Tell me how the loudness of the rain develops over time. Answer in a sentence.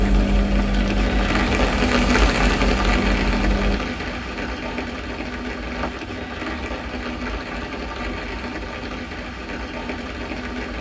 The loudness of the rain goes down.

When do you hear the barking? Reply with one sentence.
You can't hear the barking here.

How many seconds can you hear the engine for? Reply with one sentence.
You can hear the engine for 4 seconds altogether.